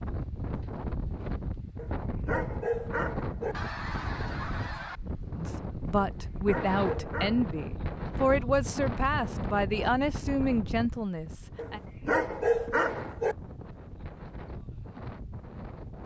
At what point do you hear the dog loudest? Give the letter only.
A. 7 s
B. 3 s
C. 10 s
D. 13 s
D.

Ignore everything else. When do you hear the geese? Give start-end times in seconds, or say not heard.
3.5-5.0.